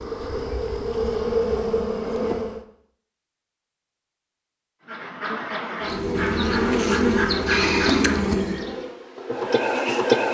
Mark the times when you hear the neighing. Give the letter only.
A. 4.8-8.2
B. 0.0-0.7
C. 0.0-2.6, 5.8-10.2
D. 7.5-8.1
D.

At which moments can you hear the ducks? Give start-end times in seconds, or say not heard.
4.8-8.2.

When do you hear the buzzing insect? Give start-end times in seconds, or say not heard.
0.0-2.6, 5.8-10.2.